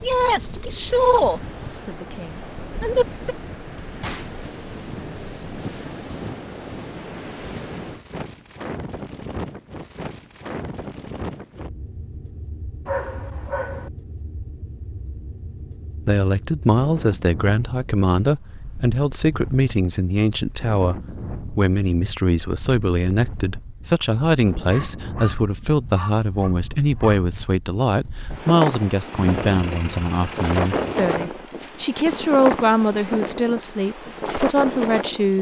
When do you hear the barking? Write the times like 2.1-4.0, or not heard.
12.8-13.9, 24.7-27.2.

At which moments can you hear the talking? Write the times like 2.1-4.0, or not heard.
0.0-3.4, 16.1-35.3.